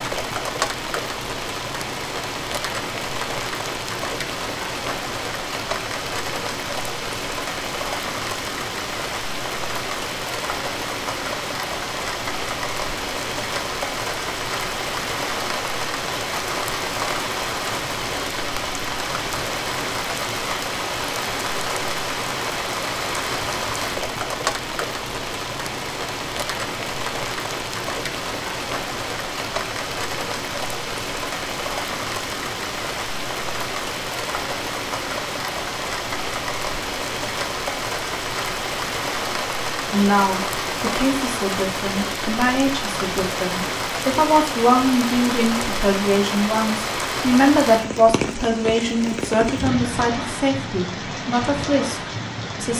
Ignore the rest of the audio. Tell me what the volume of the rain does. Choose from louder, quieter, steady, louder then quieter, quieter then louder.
steady.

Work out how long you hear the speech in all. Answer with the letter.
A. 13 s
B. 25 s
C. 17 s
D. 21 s
A.